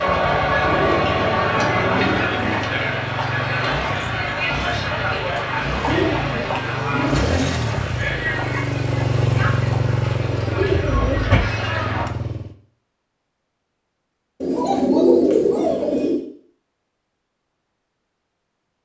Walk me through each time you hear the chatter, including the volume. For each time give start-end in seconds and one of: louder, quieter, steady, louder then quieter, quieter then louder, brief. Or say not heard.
0.0-12.1 quieter.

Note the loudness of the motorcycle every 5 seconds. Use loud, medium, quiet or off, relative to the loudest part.
medium, loud, loud, off.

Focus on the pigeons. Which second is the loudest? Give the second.
15 s.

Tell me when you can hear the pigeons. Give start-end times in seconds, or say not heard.
0.6-2.6, 5.8-7.5, 10.3-11.7, 14.4-16.2.